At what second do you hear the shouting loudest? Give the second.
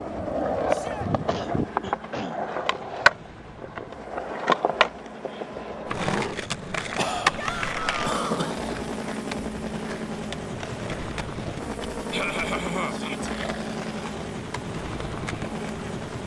8 s.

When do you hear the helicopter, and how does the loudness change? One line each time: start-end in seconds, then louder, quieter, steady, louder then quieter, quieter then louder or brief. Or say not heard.
0.0-16.2 louder.